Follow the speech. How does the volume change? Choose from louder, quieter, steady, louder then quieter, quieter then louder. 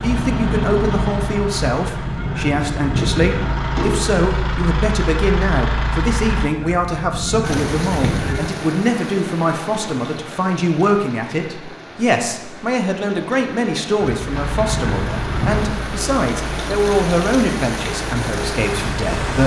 steady.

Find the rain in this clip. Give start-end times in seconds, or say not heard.
7.4-19.4.